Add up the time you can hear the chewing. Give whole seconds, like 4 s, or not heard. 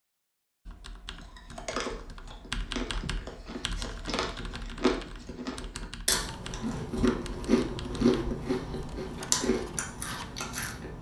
10 s.